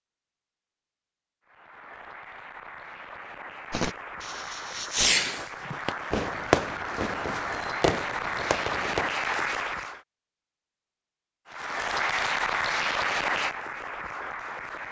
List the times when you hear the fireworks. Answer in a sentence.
The fireworks can be heard from 3.7 to 9.1 s.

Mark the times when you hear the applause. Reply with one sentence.
You can hear the applause from 1.4 to 10.0 s and from 11.4 to 14.8 s.